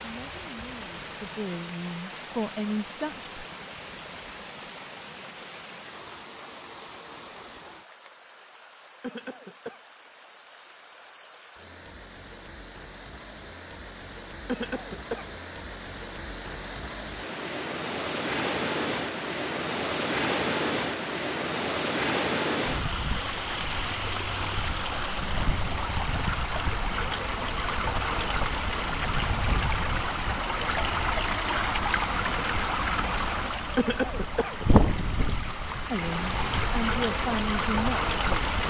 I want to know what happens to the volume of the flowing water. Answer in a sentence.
The loudness of the flowing water goes up.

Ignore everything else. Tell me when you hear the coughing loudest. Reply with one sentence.
The loudest moment of the coughing is at 34 seconds.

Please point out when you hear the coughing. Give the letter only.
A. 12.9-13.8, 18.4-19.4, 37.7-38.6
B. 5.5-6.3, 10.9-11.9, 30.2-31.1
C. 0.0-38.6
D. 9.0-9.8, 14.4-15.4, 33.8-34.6
D.